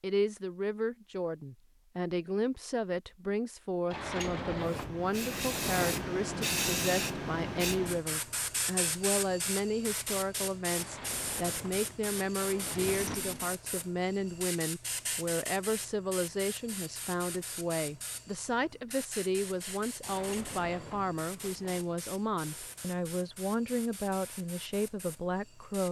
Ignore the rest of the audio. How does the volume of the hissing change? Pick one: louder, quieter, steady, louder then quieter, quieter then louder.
quieter.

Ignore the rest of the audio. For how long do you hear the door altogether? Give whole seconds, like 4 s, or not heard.
7 s.